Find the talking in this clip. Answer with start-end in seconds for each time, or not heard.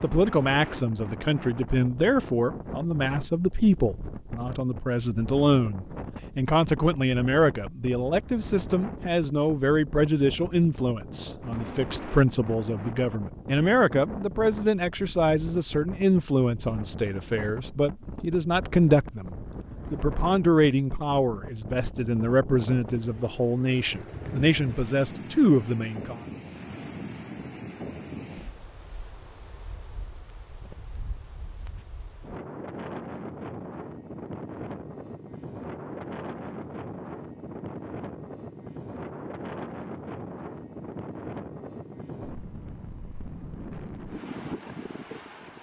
0.0-26.1.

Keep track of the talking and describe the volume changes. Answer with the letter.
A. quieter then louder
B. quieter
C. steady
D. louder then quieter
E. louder
C.